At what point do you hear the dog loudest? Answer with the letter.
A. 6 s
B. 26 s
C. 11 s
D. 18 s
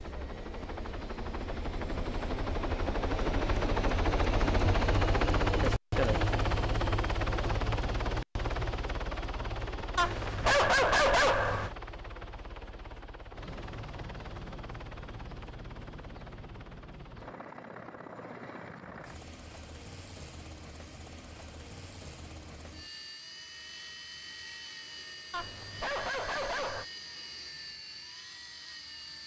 C.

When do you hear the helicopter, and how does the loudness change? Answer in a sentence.
You can hear the helicopter from 0.0 to 29.2 s, getting quieter.